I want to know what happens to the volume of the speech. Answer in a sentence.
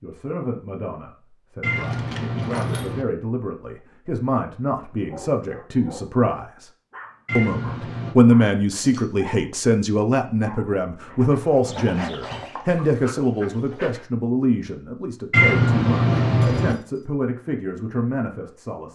The loudness of the speech goes up, then down.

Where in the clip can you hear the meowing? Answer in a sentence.
The meowing can be heard from 1.6 to 3.0 s, from 7.2 to 8.2 s and from 15.3 to 16.8 s.